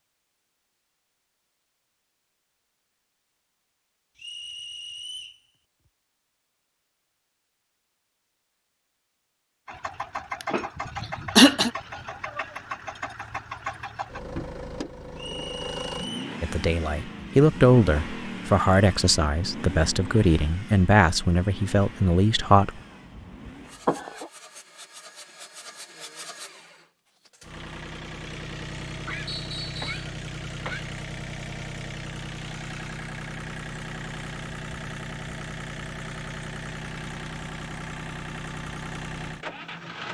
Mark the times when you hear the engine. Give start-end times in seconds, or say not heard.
9.7-40.0.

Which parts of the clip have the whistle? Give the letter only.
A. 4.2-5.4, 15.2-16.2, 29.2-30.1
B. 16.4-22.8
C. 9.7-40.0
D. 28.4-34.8
A.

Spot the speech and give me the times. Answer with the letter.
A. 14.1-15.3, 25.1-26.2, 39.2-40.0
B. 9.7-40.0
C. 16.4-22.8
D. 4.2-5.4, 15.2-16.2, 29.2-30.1
C.